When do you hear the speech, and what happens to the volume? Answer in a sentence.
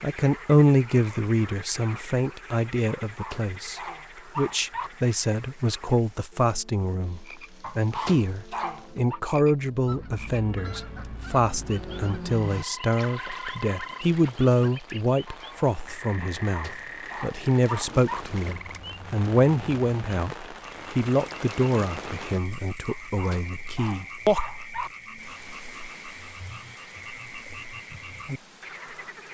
You can hear the speech from 0.0 to 24.4 s, at a steady volume.